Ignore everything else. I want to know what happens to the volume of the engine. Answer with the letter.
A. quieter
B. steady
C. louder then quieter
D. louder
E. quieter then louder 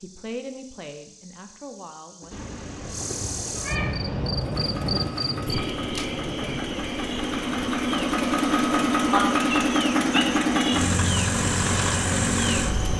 D.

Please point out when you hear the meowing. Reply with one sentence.
You can hear the meowing from 2.3 to 4.3 s and from 9.1 to 10.5 s.